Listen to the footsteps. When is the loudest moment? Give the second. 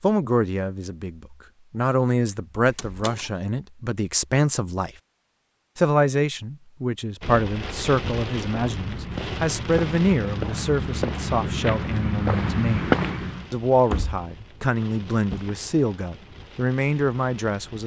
13 s.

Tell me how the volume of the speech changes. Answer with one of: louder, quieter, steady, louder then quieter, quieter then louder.
steady.